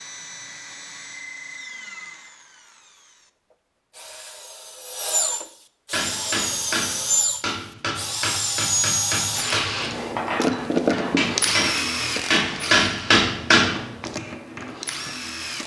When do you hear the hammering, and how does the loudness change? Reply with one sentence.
You can hear the hammering from 5.9 to 13.8 s, getting louder.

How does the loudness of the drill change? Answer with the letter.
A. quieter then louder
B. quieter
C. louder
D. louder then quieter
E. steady
D.